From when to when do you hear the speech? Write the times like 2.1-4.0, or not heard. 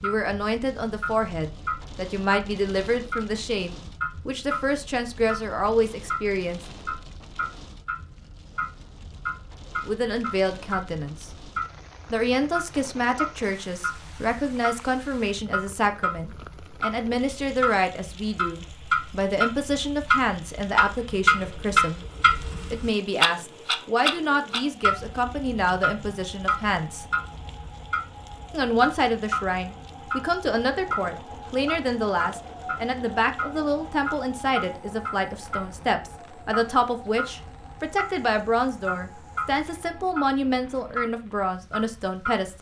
0.0-6.6, 9.8-11.3, 12.1-22.0, 22.7-27.1, 28.5-42.5.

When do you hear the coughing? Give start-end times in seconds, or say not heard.
not heard.